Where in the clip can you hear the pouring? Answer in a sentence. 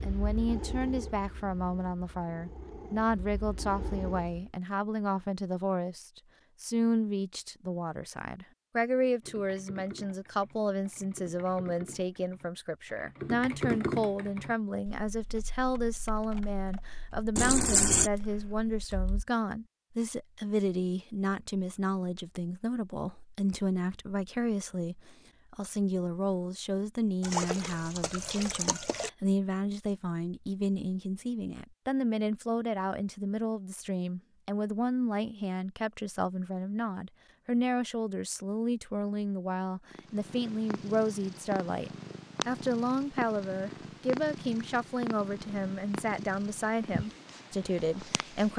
You can hear the pouring from 17.4 to 18.1 s and from 27.2 to 29.1 s.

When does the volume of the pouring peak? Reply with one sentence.
The loudest moment of the pouring is at 18 seconds.